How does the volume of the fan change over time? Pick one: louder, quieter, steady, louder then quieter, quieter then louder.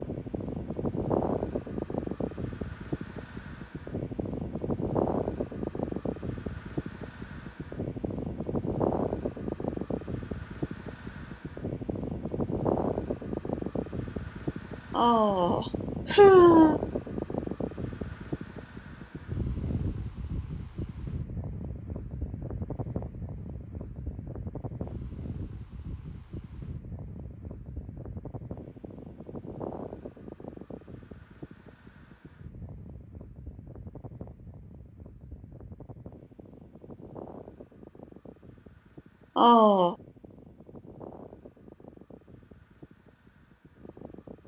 quieter.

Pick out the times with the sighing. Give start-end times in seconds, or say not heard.
14.9-16.8, 39.4-40.0.